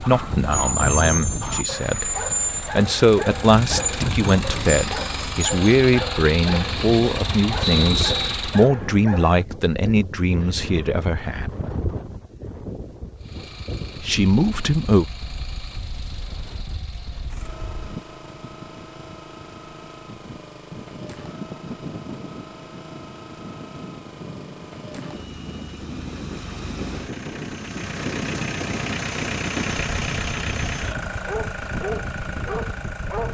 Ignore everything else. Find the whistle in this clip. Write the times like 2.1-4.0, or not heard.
7.6-8.3.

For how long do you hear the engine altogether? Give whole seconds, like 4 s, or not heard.
29 s.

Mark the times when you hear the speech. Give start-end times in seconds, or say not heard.
0.0-11.5, 14.0-15.1.